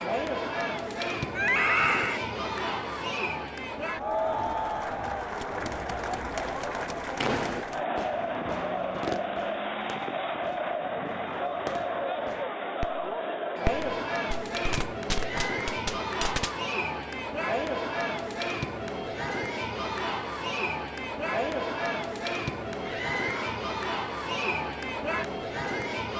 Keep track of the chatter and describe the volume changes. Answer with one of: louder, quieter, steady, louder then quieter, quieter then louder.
steady.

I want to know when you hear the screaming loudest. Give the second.
2 s.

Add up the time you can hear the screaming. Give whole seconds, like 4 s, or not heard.
2 s.